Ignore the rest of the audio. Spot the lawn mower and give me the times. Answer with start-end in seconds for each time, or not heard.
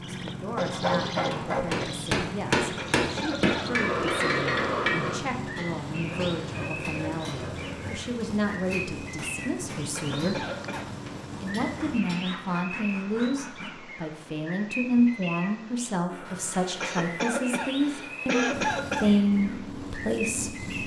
0.0-12.0, 18.5-20.8.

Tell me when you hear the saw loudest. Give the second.
1 s.